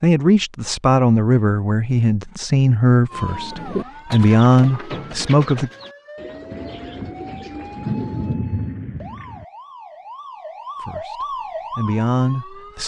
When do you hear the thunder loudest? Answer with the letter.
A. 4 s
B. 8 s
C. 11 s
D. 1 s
B.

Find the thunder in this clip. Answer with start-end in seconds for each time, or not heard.
6.5-9.4.